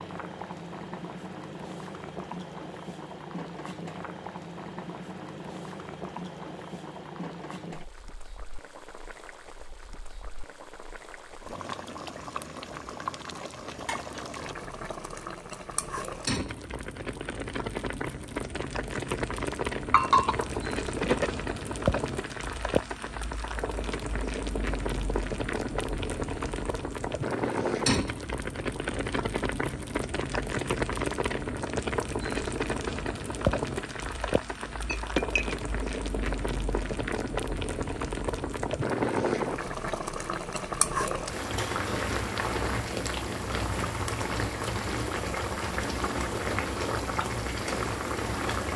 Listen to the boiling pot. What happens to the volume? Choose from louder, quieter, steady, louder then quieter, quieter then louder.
louder.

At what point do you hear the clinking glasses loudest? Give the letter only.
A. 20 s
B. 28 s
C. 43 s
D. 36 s
A.